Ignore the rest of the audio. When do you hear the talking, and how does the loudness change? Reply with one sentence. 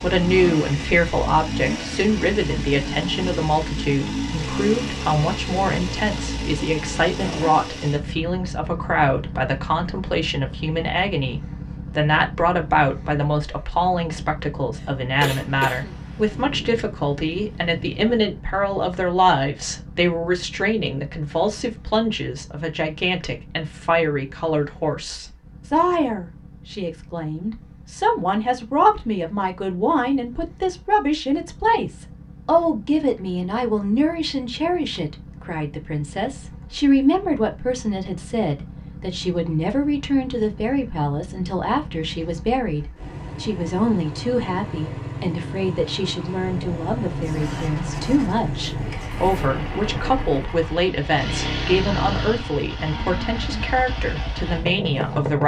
You can hear the talking from 0.0 to 55.4 s, at a steady volume.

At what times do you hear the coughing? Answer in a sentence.
You can hear the coughing from 14.8 to 16.0 s.